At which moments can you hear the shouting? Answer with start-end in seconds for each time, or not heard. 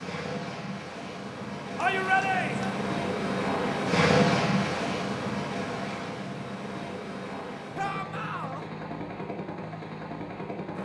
1.8-2.8, 7.8-8.7.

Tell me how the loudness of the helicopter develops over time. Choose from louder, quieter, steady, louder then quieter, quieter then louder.
louder then quieter.